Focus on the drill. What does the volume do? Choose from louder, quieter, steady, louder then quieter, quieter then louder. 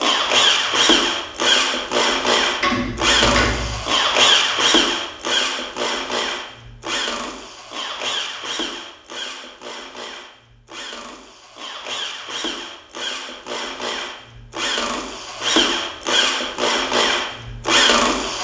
quieter then louder.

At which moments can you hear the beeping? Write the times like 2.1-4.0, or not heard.
not heard.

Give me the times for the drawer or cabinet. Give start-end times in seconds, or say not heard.
2.6-3.9.